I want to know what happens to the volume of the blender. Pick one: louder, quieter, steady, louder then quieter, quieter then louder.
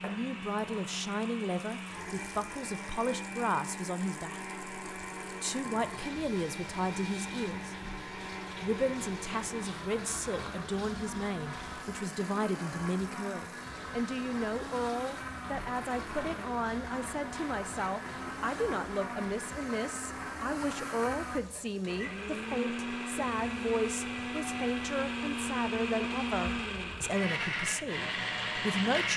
louder.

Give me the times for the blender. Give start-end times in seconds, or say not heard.
0.0-29.1.